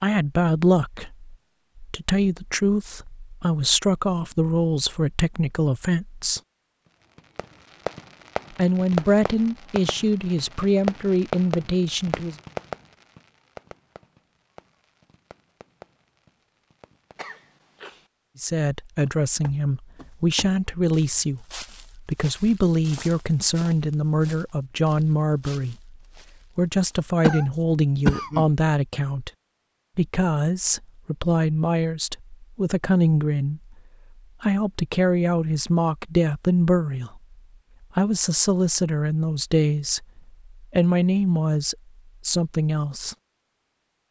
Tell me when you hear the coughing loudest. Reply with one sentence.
The volume of the coughing peaks at 28 seconds.